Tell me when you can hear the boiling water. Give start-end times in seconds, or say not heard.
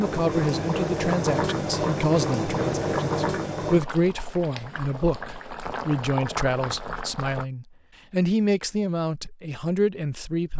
0.0-7.5.